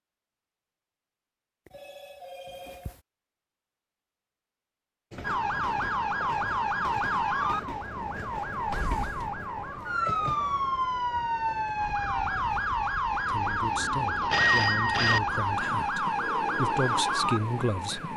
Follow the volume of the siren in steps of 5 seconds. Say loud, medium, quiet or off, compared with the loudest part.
off, loud, loud, loud.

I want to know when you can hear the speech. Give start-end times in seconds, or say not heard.
13.2-18.1.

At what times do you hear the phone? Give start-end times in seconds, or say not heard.
1.6-3.0, 14.3-15.2.